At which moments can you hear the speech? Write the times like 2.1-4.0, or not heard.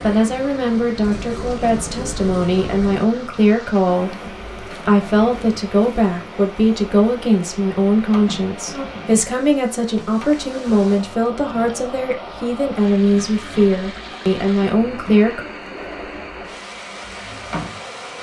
0.0-15.4.